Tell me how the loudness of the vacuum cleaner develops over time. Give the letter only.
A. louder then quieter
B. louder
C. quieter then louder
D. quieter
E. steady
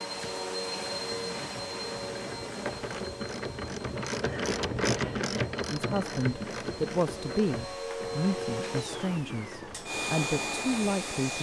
C.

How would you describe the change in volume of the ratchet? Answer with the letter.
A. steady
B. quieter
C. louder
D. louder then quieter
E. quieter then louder
D.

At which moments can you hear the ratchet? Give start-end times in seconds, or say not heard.
0.1-10.8.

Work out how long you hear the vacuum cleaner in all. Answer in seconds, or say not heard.
11 s.